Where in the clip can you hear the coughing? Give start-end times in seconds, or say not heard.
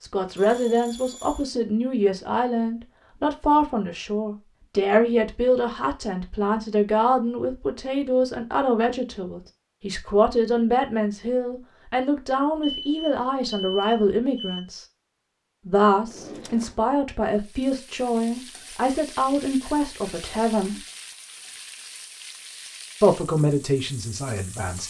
not heard.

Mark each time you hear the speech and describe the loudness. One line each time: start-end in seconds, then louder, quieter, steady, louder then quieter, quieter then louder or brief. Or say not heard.
0.0-14.8 steady
15.7-20.8 steady
23.0-24.8 brief.